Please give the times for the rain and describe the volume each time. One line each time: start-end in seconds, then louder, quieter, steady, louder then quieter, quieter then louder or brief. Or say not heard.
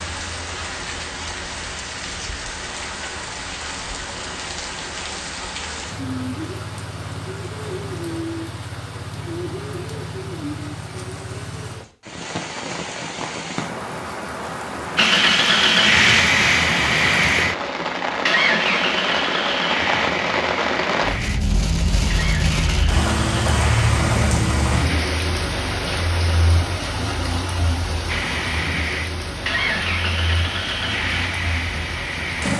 0.0-32.5 louder then quieter.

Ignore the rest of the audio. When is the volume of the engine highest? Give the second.
16 s.